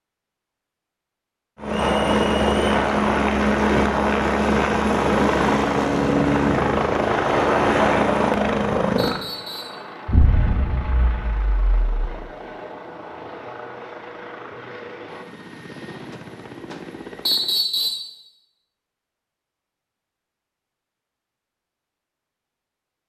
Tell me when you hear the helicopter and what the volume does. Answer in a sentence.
The helicopter can be heard from 1.6 to 17.6 s, getting quieter.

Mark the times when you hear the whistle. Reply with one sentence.
You can hear the whistle from 1.8 to 2.6 s, from 8.9 to 9.8 s and from 17.2 to 18.1 s.